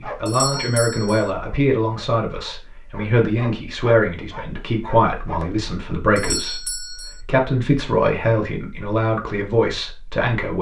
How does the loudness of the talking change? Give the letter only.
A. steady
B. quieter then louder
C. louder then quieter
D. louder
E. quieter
A.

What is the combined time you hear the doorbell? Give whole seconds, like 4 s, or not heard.
2 s.